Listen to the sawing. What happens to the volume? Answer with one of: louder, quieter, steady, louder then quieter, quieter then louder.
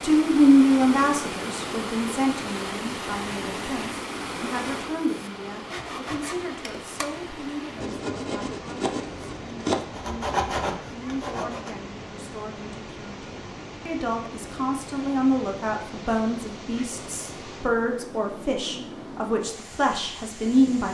louder.